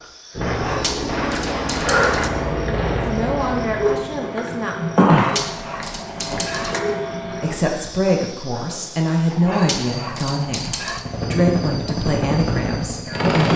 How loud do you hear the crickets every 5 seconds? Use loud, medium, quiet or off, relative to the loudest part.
loud, loud, quiet.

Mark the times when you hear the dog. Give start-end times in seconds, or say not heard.
0.5-2.3, 5.0-6.8, 9.3-11.1.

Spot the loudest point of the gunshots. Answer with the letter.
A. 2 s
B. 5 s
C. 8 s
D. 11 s
A.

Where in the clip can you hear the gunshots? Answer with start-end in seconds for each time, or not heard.
0.4-3.2.